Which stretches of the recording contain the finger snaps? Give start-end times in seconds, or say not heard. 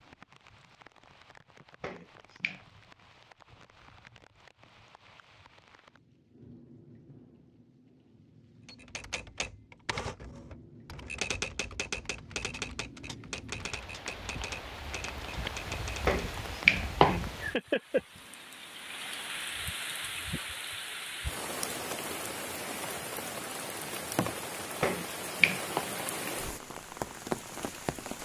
1.8-2.6, 16.1-17.2, 24.8-25.9.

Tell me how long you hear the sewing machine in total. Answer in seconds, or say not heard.
not heard.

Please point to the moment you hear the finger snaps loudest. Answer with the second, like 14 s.
17 s.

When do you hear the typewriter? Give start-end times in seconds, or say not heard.
8.7-16.2.